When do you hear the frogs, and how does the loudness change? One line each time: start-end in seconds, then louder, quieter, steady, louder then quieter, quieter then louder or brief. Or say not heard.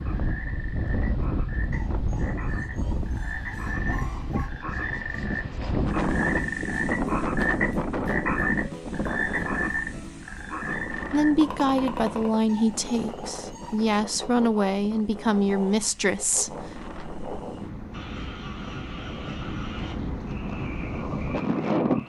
0.0-22.0 louder then quieter.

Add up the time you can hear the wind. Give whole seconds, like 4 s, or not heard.
22 s.